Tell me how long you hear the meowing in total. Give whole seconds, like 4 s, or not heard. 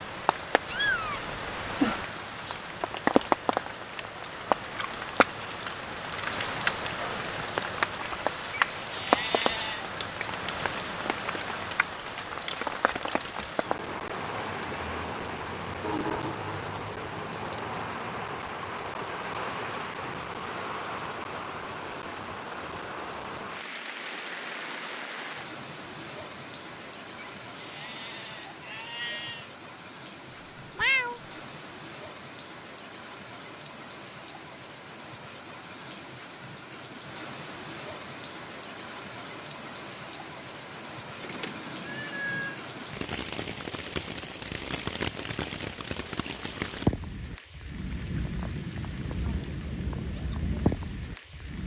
4 s.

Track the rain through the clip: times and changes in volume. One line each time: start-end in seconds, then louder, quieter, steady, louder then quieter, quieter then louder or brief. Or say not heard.
0.0-51.6 quieter then louder.